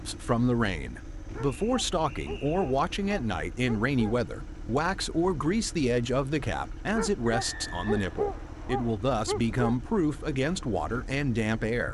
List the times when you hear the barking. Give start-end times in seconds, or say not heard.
1.3-4.2, 7.0-9.8.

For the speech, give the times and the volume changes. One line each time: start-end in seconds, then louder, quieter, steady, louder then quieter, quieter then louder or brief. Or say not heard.
0.0-11.8 steady.